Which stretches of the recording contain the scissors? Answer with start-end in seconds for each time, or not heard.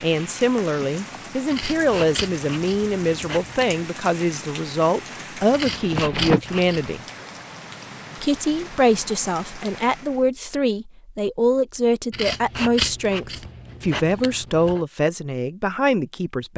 1.5-3.9, 5.5-7.0, 12.1-14.8.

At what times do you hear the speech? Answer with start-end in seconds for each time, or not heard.
0.0-7.0, 8.2-16.5.